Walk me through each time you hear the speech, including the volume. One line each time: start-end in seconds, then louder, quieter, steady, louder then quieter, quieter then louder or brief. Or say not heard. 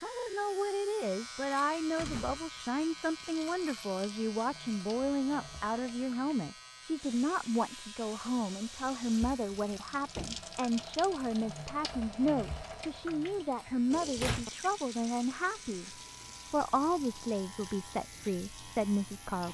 0.0-19.4 steady.